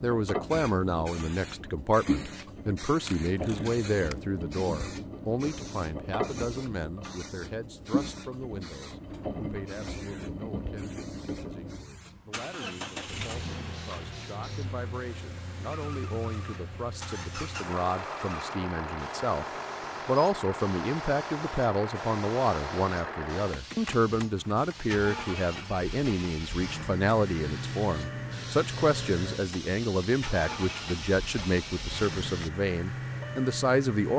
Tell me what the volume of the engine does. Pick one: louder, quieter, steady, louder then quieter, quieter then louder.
steady.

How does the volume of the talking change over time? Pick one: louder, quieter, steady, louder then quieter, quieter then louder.
quieter then louder.